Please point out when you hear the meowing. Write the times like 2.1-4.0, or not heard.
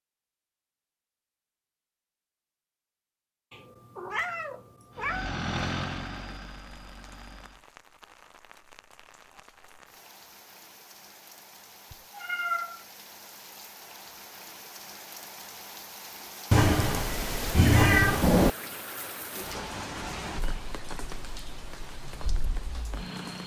3.5-5.3, 11.9-12.8, 16.5-18.6.